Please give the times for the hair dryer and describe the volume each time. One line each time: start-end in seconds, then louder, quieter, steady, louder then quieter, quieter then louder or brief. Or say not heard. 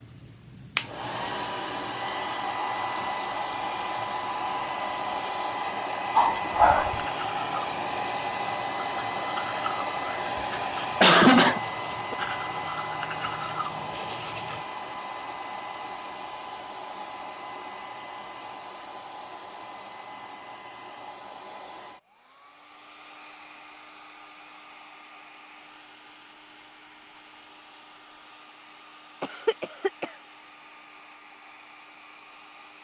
0.0-32.7 quieter.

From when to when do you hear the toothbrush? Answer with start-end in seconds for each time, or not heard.
6.9-14.7.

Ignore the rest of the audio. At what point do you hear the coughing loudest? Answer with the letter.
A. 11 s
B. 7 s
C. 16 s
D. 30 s
A.